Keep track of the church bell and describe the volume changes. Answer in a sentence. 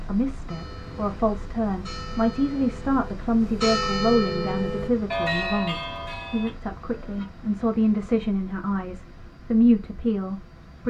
The loudness of the church bell goes up, then down.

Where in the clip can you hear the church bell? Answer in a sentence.
The church bell can be heard from 0.5 to 7.2 s.